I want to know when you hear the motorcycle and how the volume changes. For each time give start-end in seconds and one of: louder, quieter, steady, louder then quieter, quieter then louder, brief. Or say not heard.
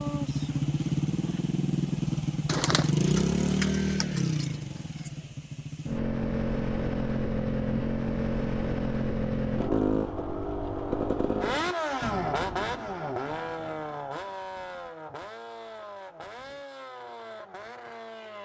0.0-18.4 quieter.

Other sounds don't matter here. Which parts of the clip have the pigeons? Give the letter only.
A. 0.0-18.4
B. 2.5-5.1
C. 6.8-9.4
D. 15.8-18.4
B.